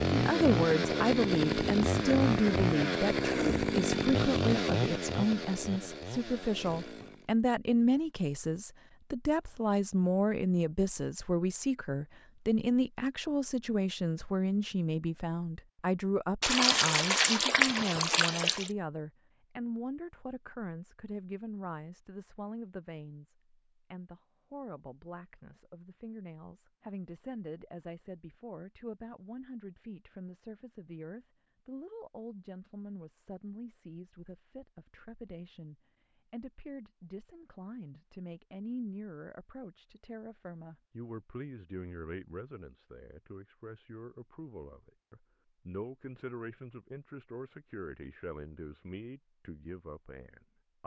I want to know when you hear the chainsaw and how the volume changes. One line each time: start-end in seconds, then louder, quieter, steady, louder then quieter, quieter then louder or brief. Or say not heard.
0.0-7.3 quieter.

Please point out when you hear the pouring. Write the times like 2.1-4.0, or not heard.
16.4-18.7.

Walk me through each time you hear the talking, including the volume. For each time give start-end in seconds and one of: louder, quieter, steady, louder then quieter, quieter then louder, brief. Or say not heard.
0.1-50.8 quieter.